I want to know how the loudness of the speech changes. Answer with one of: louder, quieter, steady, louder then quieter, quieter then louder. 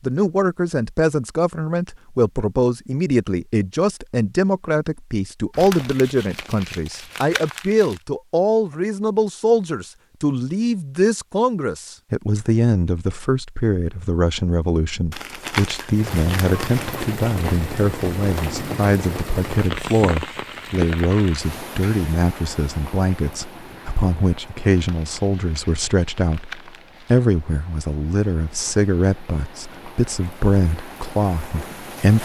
steady.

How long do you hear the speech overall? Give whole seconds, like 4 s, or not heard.
32 s.